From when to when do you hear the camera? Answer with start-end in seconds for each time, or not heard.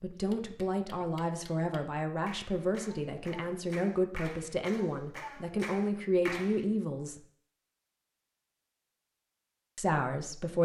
not heard.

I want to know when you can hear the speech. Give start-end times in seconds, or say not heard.
0.0-7.2, 9.8-10.6.